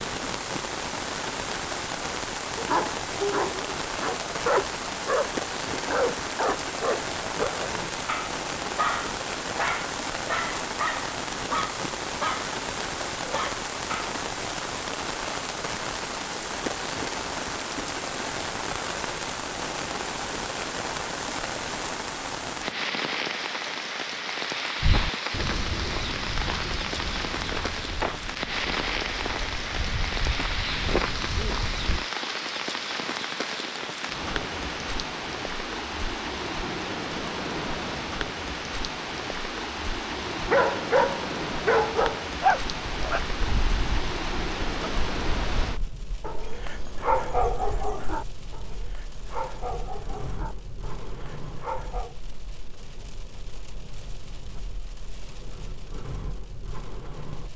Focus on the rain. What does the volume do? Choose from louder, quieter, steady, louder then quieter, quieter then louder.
quieter.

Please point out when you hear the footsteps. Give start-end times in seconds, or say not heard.
24.8-32.0.